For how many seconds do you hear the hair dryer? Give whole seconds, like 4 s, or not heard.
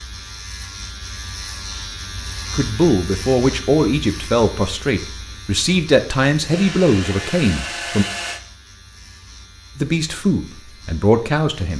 2 s.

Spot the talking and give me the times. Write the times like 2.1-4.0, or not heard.
2.5-8.1, 9.8-11.7.